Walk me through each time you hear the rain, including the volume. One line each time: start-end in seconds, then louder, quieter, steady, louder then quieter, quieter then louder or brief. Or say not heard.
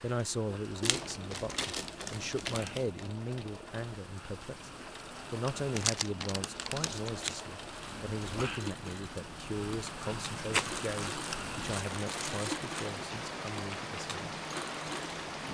0.0-15.4 louder.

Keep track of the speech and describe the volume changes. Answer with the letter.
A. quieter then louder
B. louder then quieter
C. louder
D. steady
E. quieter
E.